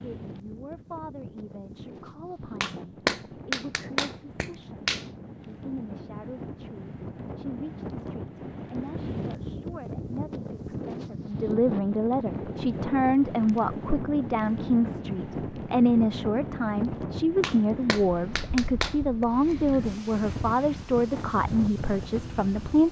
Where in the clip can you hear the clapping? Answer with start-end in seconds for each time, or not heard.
2.6-5.0, 17.4-19.2.